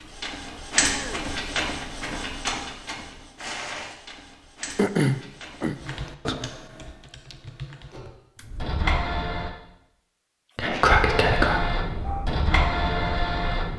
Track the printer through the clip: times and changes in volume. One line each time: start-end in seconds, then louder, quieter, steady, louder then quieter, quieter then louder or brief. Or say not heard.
0.0-6.0 quieter
7.9-9.5 brief
11.1-13.7 brief.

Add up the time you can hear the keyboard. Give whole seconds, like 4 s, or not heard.
3 s.